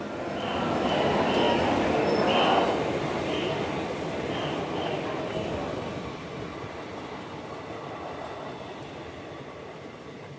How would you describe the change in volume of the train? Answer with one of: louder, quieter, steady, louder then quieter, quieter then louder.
quieter.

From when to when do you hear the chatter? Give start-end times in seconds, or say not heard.
0.0-6.0.